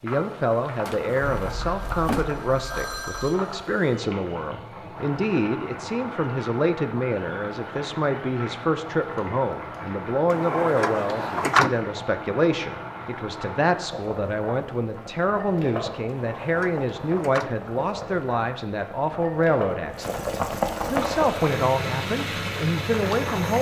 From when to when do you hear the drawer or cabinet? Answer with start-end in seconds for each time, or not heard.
0.8-2.4, 10.3-11.8, 16.1-17.6.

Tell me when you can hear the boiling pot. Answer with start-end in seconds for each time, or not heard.
0.0-23.5.